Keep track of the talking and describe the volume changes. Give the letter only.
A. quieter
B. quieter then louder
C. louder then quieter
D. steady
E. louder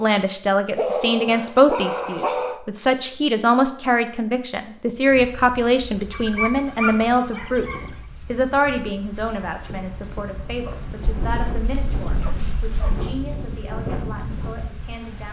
A.